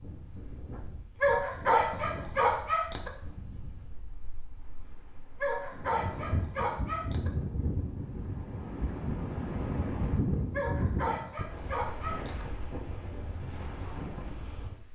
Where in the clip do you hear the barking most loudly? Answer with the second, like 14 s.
2 s.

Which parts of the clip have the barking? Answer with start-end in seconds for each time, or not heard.
1.2-3.1, 5.4-7.3, 10.5-12.4.